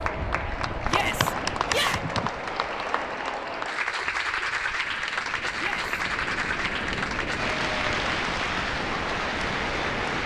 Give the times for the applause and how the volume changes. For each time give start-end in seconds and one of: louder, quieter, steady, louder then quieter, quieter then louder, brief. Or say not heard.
0.0-10.2 steady.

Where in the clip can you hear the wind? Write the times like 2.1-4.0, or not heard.
0.0-10.2.